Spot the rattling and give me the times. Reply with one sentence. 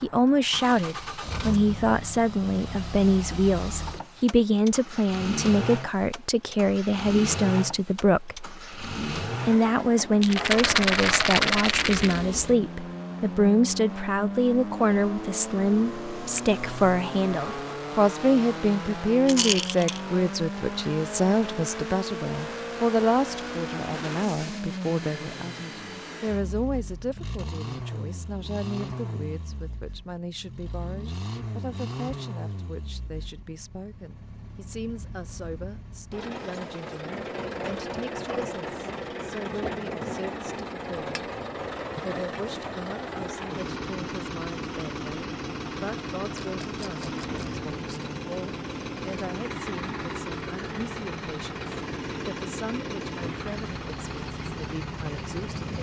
You can hear the rattling from 10.2 to 12.2 s, from 19.2 to 20.0 s and from 46.4 to 47.6 s.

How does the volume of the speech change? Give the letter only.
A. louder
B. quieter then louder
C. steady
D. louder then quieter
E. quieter
E.